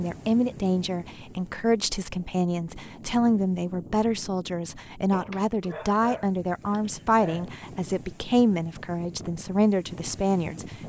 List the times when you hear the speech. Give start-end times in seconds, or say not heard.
0.0-10.7.